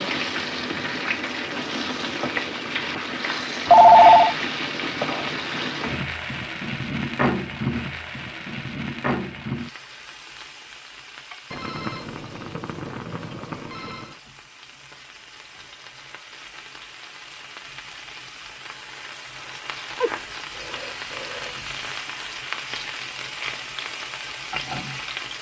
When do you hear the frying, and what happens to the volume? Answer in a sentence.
You can hear the frying from 0.0 to 25.3 s, getting quieter then louder.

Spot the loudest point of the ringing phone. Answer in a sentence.
The volume of the ringing phone peaks at 4 seconds.